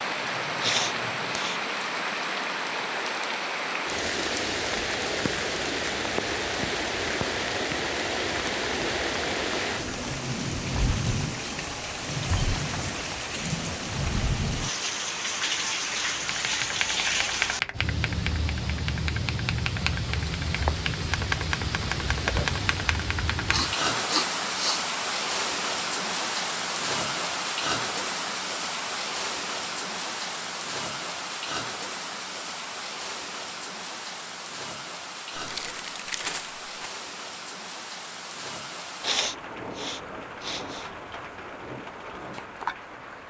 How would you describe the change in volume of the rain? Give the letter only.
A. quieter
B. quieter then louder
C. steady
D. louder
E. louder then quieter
A.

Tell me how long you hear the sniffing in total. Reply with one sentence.
The sniffing can be heard for 4 seconds in total.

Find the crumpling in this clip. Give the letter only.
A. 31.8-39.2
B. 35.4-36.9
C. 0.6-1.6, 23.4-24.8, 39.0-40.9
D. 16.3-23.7
B.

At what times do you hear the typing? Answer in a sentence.
The typing can be heard from 16.3 to 23.7 s.